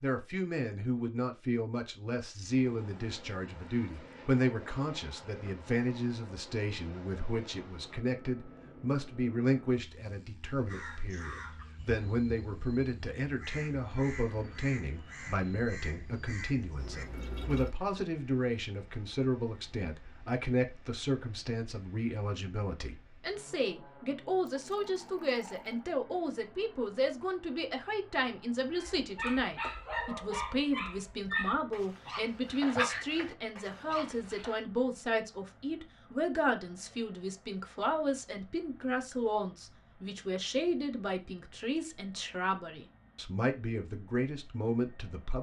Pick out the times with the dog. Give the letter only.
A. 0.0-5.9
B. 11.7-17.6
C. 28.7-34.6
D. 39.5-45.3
C.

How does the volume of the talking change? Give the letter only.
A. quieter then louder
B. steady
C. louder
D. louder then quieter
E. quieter
B.